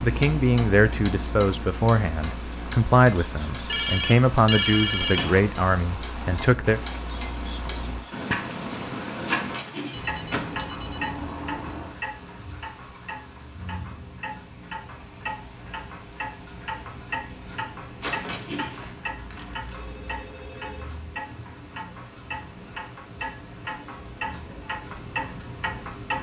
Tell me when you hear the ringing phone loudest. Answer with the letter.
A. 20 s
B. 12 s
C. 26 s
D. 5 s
D.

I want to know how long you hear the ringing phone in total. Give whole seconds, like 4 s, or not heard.
6 s.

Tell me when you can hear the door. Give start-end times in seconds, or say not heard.
5.0-5.4, 9.2-10.7, 18.0-18.9.